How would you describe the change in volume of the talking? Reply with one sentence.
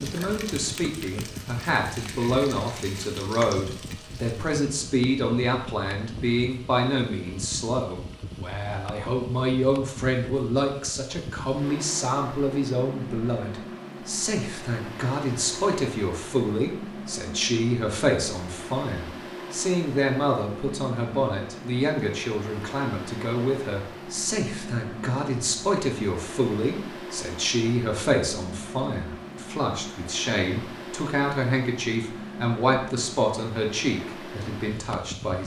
The loudness of the talking stays about the same.